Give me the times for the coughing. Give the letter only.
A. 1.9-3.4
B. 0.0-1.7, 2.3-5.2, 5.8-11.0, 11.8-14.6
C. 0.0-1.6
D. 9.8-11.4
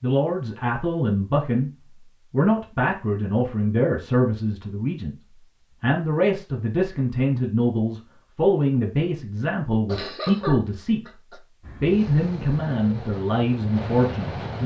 D.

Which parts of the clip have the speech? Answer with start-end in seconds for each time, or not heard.
0.0-1.7, 2.3-5.2, 5.8-11.0, 11.8-14.6.